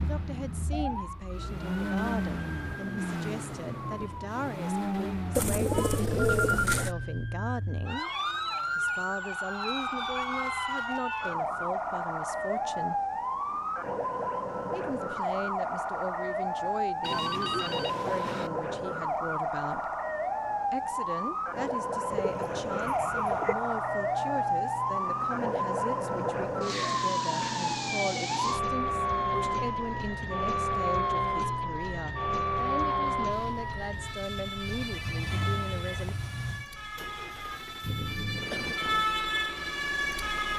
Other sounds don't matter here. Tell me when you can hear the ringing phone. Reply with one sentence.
You can hear the ringing phone from 5.7 to 6.8 s, from 17.0 to 18.5 s and from 34.6 to 36.1 s.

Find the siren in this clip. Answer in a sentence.
You can hear the siren from 0.0 to 40.5 s.